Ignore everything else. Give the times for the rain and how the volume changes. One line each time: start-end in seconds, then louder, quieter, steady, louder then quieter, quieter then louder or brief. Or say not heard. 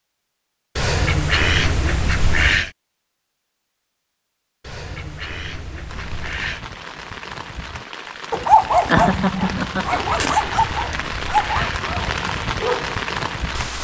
5.8-13.7 louder.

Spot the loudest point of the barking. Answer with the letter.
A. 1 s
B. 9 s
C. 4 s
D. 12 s
B.